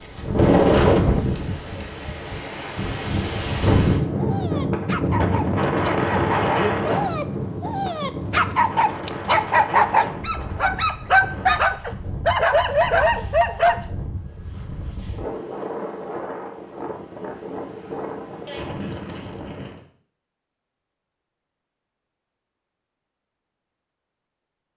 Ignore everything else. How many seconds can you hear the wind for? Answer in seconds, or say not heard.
20 s.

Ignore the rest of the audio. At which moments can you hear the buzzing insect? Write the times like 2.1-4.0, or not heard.
not heard.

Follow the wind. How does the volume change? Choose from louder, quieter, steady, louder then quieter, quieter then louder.
quieter.